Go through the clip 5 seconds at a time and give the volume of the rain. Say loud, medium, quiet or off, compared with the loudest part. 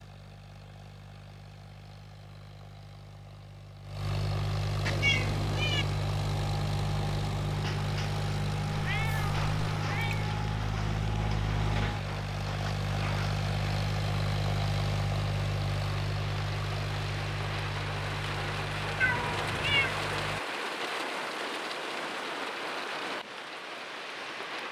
off, medium, medium, loud, loud.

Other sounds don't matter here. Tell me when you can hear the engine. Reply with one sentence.
You can hear the engine from 0.0 to 20.4 s.